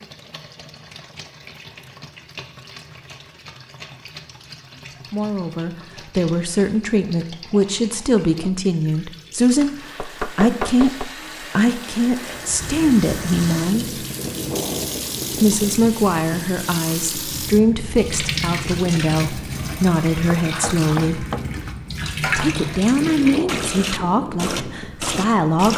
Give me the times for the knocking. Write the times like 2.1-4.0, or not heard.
9.9-11.1, 20.4-21.5.